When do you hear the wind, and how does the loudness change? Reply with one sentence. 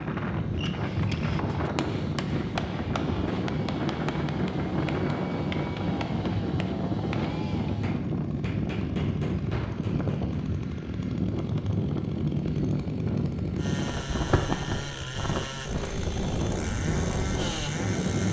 The wind can be heard from 0.0 to 18.2 s, at a steady volume.